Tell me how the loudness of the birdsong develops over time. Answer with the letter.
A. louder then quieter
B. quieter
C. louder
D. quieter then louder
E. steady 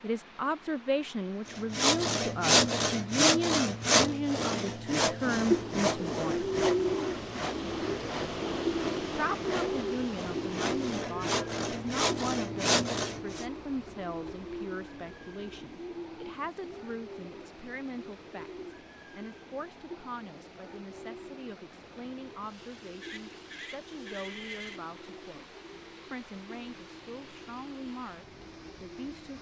B.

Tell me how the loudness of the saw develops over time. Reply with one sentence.
The volume of the saw goes down, then up.